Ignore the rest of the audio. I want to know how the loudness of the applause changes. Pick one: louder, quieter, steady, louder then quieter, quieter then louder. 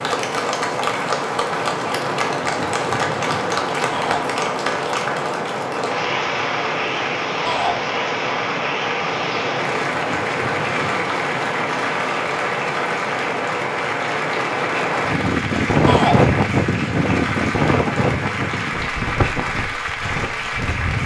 steady.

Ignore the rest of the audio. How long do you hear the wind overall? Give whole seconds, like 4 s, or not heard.
21 s.